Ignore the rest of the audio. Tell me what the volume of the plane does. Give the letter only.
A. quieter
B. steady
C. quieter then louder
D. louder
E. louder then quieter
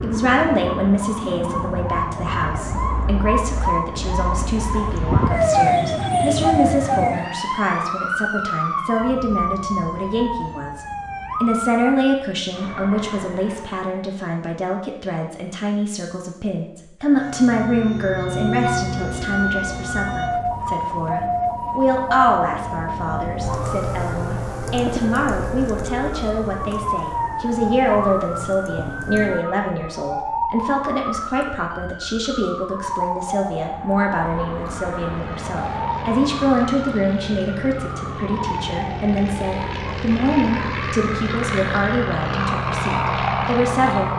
D.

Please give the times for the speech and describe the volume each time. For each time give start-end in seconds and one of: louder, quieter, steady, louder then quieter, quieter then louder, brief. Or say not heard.
0.0-44.1 steady.